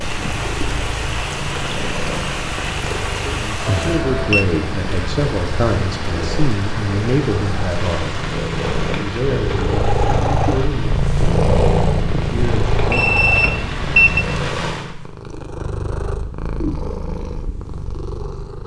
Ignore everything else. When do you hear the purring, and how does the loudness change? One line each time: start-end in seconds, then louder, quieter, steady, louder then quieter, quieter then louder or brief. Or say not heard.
0.0-18.6 louder then quieter.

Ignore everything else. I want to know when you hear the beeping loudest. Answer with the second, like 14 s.
14 s.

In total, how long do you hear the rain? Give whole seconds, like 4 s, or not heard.
15 s.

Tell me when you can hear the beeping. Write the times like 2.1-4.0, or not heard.
3.6-4.5, 12.9-14.2.